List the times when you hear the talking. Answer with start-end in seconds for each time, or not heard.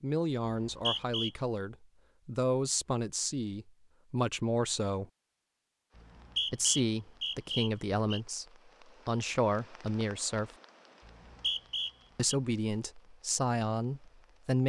0.0-5.0, 6.5-8.4, 9.1-10.5, 12.2-14.6.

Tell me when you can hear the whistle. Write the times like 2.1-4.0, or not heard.
0.5-1.3, 6.0-8.2, 11.1-12.3.